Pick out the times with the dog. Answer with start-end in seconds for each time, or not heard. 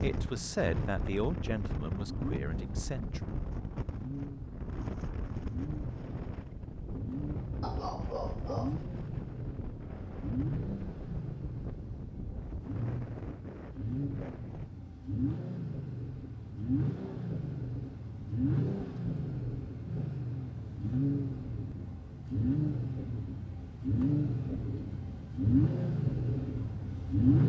7.6-8.8.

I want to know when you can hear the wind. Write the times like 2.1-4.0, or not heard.
0.0-14.7.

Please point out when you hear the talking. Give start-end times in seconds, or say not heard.
0.0-3.2.